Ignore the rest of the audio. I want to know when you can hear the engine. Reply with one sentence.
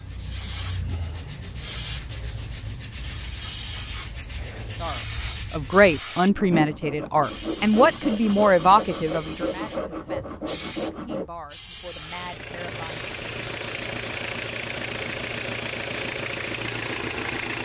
You can hear the engine from 12.0 to 17.6 s.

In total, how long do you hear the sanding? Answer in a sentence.
The sanding can be heard for 11 seconds in total.